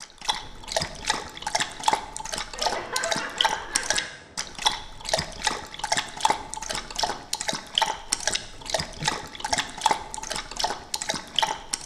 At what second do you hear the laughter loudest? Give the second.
3 s.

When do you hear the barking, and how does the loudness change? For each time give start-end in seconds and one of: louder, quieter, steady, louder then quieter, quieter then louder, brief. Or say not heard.
0.0-11.8 steady.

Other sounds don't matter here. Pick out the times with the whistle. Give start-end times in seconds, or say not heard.
not heard.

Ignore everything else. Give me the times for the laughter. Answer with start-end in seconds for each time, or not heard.
2.5-4.1, 9.0-9.6.